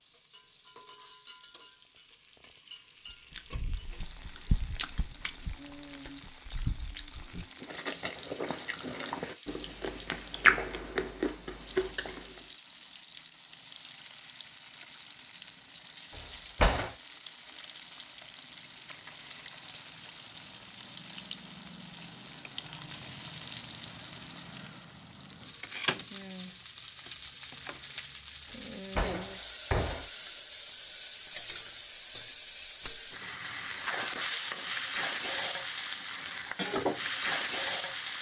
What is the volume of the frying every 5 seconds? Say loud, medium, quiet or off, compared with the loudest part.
quiet, quiet, quiet, medium, medium, medium, loud, loud.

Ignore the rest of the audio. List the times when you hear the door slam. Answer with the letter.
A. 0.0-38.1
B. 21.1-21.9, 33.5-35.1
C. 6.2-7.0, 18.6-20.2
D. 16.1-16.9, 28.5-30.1
D.